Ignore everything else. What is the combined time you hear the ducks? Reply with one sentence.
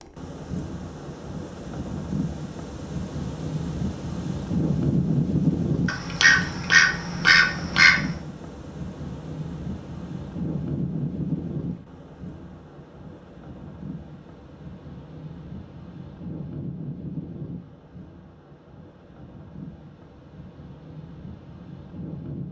You can hear the ducks for 2 seconds altogether.